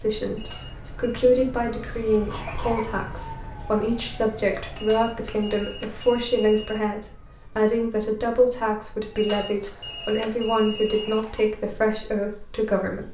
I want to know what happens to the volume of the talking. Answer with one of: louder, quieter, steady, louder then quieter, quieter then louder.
steady.